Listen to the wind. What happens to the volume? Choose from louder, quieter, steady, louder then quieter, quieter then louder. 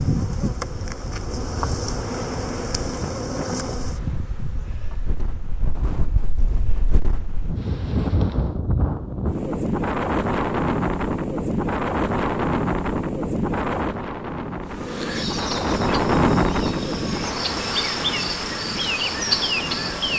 louder.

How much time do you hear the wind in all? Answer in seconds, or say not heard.
20 s.